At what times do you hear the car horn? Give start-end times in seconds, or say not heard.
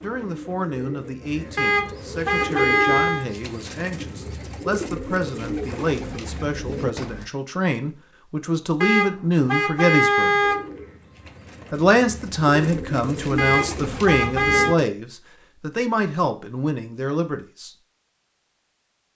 1.6-3.2, 8.8-10.7, 13.3-14.8.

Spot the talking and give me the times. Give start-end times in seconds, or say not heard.
0.0-10.4, 11.7-17.7.